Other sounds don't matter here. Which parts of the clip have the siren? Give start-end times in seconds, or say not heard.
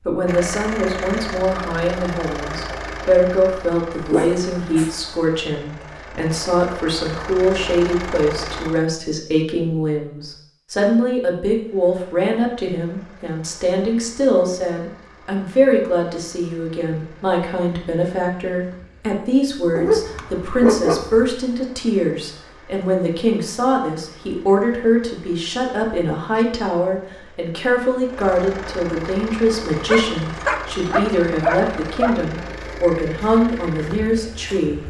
not heard.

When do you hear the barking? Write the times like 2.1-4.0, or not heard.
4.0-5.0, 19.8-21.3, 29.7-32.1.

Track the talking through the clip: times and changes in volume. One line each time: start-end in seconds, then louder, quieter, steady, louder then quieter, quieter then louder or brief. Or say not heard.
0.1-34.8 steady.